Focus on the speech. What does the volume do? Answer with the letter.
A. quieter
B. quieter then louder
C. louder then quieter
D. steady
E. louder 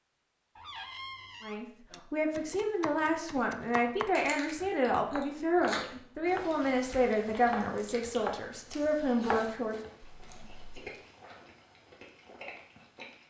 D.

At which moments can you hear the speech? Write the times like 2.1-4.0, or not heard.
1.4-9.9.